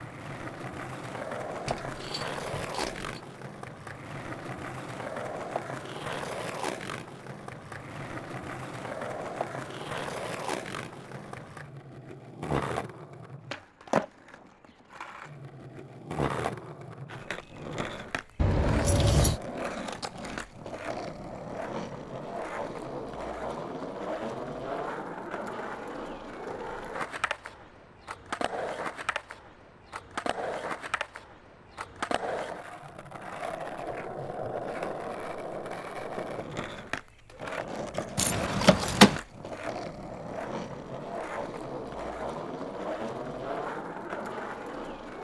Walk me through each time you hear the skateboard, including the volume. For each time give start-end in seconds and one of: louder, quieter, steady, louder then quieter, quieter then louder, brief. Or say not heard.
0.0-45.1 steady.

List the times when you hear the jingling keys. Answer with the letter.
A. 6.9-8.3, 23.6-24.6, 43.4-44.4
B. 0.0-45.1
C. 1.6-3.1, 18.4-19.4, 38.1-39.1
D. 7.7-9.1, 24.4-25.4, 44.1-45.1
C.